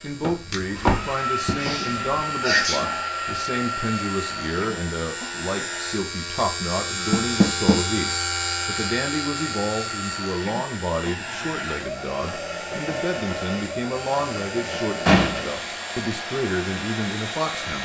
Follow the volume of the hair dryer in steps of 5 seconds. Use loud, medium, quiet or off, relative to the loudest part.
loud, medium, loud, loud.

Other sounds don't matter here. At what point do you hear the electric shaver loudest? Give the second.
8 s.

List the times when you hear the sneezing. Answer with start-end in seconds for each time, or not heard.
1.6-3.0.